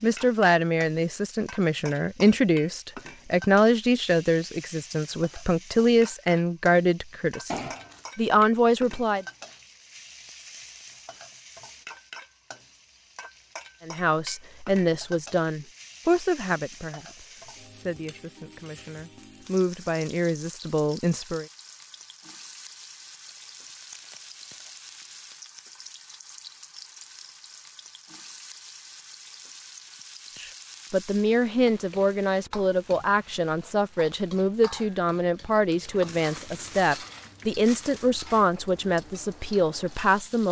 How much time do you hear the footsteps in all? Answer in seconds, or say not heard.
not heard.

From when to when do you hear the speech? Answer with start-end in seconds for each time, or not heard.
0.0-9.2, 13.8-21.4, 30.4-40.4.